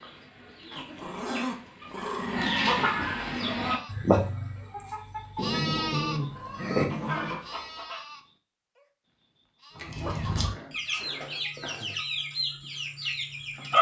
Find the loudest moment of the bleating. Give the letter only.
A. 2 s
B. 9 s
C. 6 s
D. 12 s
C.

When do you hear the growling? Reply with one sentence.
You can hear the growling from 0.7 to 2.6 s, from 5.3 to 7.4 s and from 10.2 to 12.0 s.